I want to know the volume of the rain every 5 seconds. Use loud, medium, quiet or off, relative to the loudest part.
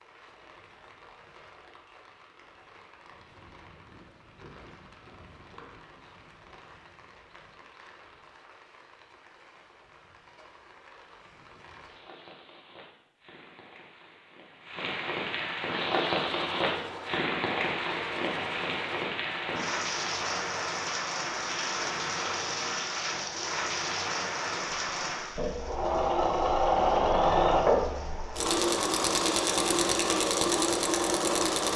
quiet, quiet, quiet, loud, loud, quiet, off.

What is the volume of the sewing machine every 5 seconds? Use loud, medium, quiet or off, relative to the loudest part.
off, off, off, quiet, quiet, loud, loud.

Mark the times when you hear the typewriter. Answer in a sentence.
You can't hear the typewriter here.